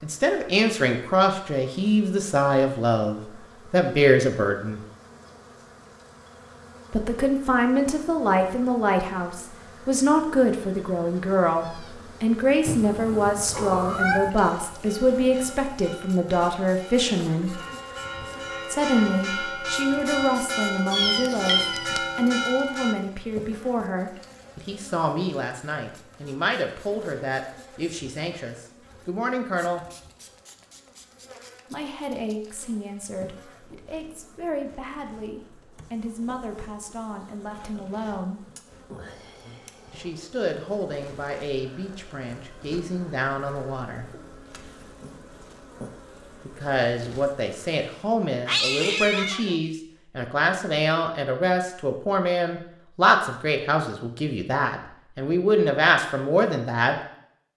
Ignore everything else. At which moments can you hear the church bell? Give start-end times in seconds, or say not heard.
13.8-22.9.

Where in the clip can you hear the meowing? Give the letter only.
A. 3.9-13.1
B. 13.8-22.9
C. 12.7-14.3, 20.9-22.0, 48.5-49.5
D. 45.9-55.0
C.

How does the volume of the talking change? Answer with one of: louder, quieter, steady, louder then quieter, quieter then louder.
quieter then louder.